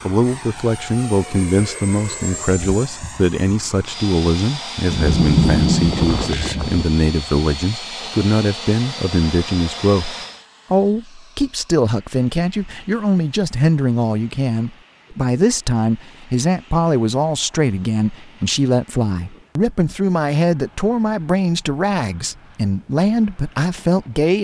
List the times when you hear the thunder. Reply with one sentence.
You can hear the thunder from 4.9 to 6.8 s.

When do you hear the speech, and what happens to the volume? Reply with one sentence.
The speech can be heard from 0.1 to 24.3 s, at a steady volume.